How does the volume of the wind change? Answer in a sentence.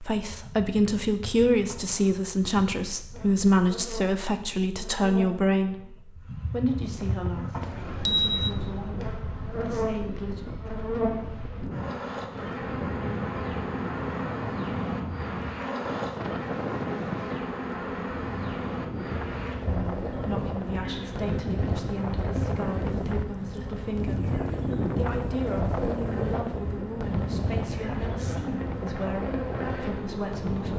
The loudness of the wind goes up.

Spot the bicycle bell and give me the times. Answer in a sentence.
You can hear the bicycle bell from 7.6 to 8.6 s.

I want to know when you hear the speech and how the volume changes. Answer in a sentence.
The speech can be heard from 0.0 to 10.4 s, getting quieter; and from 19.6 to 30.7 s, at a steady volume.